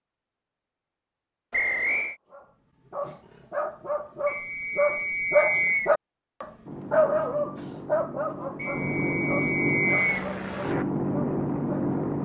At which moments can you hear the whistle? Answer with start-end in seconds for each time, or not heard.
1.5-2.1, 4.2-6.0, 8.6-10.2.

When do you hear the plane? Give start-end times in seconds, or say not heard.
6.7-12.2.